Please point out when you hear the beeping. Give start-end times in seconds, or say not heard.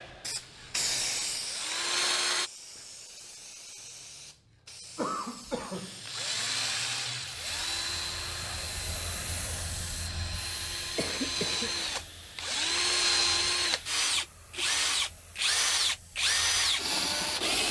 not heard.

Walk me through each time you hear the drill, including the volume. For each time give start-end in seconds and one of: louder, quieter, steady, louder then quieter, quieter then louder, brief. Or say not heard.
0.0-2.5 brief
5.8-17.6 quieter then louder.